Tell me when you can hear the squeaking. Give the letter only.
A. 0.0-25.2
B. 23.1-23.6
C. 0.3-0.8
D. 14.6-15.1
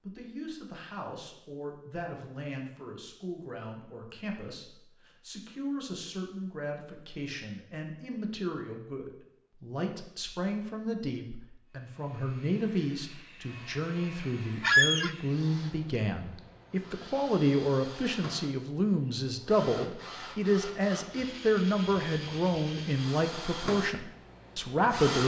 D.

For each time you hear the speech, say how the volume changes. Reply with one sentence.
You can hear the speech from 0.0 to 25.2 s, getting louder.